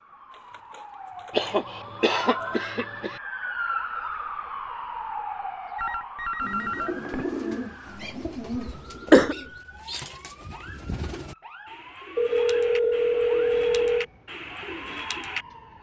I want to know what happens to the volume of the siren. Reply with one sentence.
The volume of the siren goes up, then down.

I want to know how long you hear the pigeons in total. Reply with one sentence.
The pigeons can be heard for 9 seconds in total.